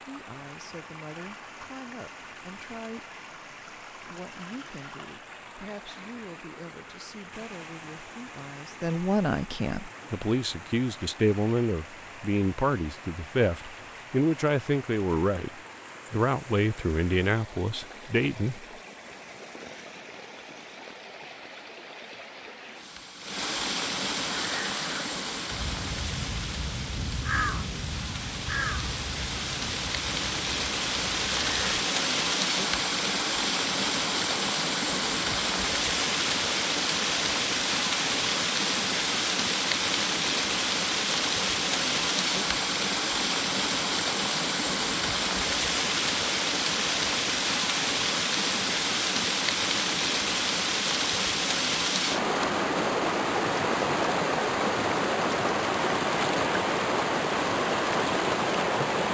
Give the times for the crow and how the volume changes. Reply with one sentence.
The crow can be heard from 24.4 to 31.9 s, getting louder then quieter.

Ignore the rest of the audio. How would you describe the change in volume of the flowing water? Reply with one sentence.
The loudness of the flowing water goes up.